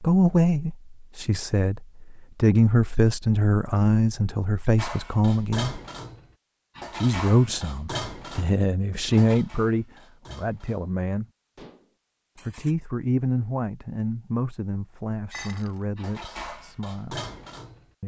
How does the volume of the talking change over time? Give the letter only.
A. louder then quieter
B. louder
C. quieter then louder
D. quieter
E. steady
D.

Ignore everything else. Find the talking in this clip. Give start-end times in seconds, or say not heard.
0.0-5.8, 7.0-11.2, 12.4-17.2.